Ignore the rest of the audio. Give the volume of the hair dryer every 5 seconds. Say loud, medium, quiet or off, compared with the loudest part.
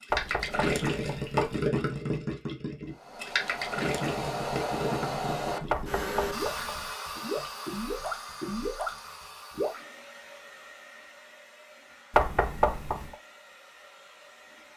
loud, loud, quiet.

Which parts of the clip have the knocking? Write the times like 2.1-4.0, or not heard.
0.1-1.6, 5.7-6.9, 12.1-13.2.